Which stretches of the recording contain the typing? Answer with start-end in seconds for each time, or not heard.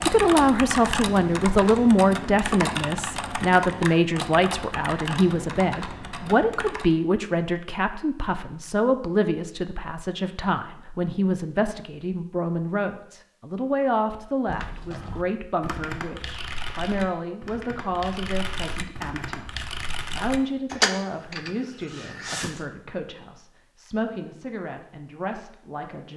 0.0-7.0, 14.4-22.6.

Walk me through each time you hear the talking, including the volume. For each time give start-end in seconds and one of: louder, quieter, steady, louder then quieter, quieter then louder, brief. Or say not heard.
0.0-26.1 quieter.